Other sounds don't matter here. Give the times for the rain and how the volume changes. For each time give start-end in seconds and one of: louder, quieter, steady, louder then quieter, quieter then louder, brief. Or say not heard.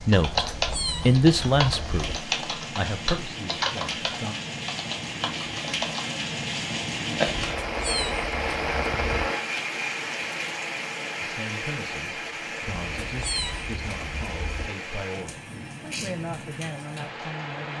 0.0-17.7 louder then quieter.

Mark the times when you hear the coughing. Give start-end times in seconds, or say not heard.
not heard.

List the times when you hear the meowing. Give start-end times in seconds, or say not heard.
0.1-2.2, 7.5-9.3, 12.7-14.7.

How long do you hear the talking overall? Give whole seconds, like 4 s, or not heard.
11 s.